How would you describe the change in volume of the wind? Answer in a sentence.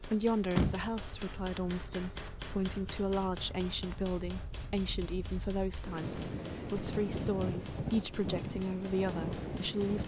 The loudness of the wind goes up.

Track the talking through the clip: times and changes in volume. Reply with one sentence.
The talking can be heard from 0.0 to 10.0 s, at a steady volume.